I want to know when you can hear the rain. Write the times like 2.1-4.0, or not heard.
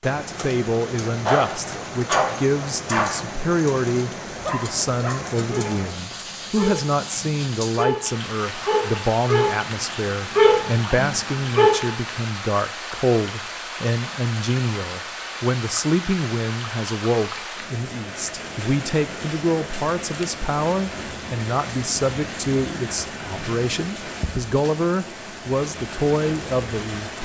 0.0-27.2.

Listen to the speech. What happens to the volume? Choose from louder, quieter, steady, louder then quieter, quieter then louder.
steady.